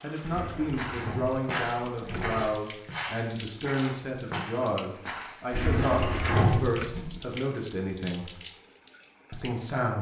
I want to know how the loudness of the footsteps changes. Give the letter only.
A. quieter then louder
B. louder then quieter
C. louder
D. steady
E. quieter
E.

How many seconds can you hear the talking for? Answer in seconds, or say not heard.
9 s.